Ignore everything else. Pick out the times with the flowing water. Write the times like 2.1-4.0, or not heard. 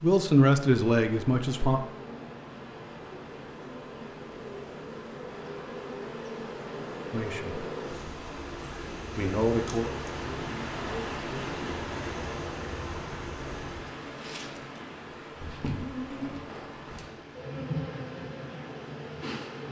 0.0-19.6.